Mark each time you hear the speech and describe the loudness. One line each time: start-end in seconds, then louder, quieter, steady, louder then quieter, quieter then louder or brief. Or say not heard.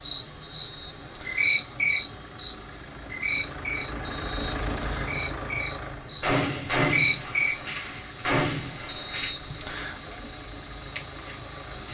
not heard.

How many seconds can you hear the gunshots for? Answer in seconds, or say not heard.
3 s.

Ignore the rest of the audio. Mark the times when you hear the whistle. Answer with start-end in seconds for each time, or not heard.
0.4-1.6, 4.0-5.2, 8.8-10.0.